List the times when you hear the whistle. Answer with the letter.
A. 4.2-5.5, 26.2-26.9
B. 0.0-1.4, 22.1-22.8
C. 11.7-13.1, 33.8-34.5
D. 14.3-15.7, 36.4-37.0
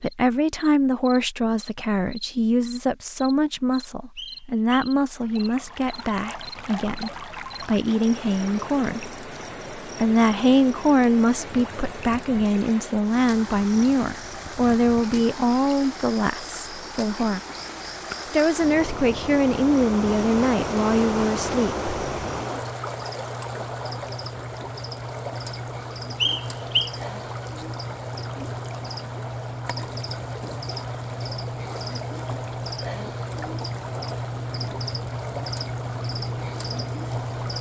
A.